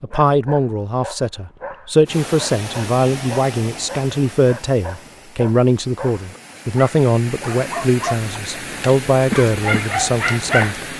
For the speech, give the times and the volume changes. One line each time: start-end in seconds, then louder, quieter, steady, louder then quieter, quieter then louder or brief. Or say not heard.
0.0-10.8 steady.